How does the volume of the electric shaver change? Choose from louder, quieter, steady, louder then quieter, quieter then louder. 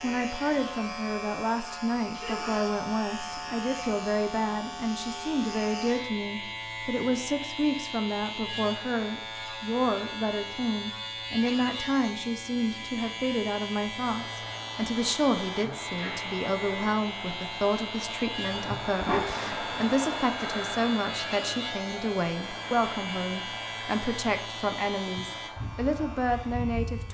steady.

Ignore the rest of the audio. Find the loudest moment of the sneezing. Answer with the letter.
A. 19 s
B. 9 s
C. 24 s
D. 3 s
A.